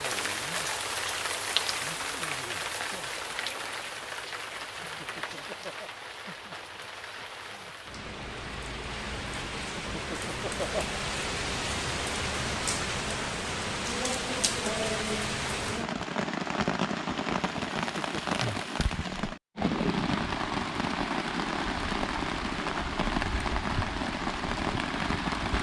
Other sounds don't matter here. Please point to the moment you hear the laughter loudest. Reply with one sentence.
The volume of the laughter peaks at 11 seconds.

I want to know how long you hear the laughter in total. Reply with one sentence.
You can hear the laughter for 3 seconds altogether.